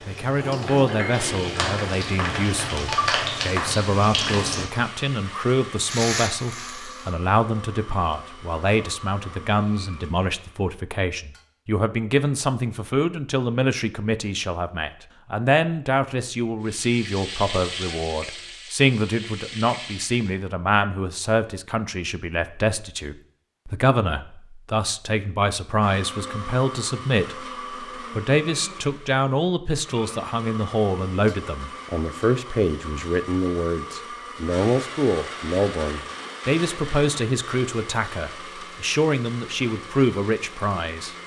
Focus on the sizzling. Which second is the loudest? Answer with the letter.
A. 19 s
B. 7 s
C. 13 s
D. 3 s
D.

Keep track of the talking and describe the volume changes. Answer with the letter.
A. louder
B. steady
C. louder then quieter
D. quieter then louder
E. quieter
B.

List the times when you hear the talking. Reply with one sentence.
The talking can be heard from 0.1 to 41.1 s.